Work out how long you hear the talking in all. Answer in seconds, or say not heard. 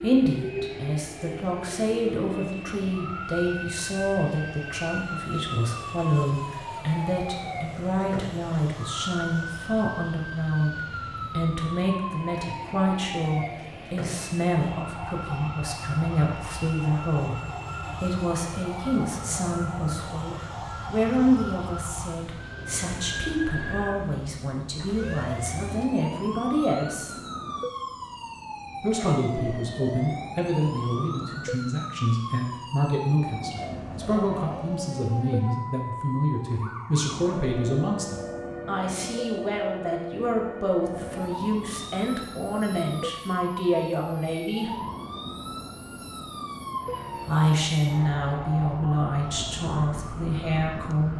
47 s.